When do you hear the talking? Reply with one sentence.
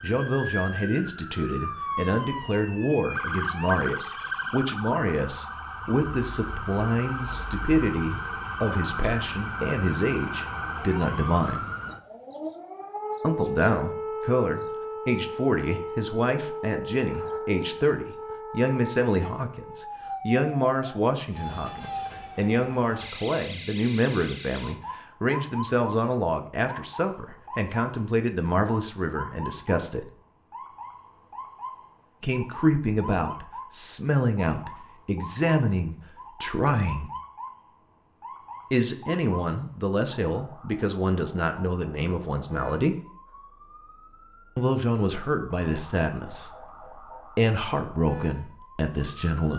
You can hear the talking from 0.0 to 11.6 s, from 13.2 to 30.1 s, from 32.2 to 37.1 s, from 38.7 to 43.0 s and from 44.5 to 49.5 s.